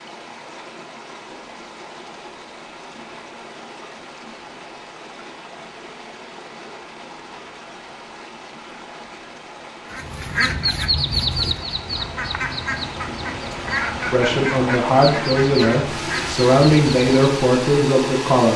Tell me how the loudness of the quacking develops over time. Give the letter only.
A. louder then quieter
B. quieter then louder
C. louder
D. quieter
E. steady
D.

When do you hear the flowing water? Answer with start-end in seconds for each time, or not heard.
0.0-18.5.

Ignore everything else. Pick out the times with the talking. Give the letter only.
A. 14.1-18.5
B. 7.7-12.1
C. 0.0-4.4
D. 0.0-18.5
A.